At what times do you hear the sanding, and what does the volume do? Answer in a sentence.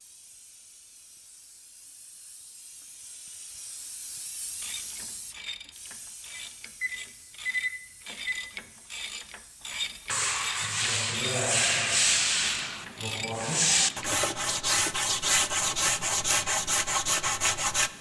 The sanding can be heard from 10.1 to 17.9 s, at a steady volume.